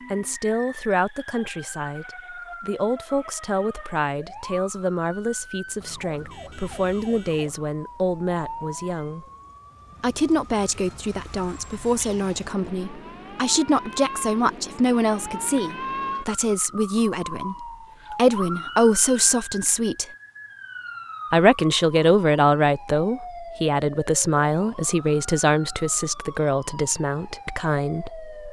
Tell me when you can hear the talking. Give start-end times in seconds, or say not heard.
0.1-9.2, 10.0-20.1, 21.3-28.4.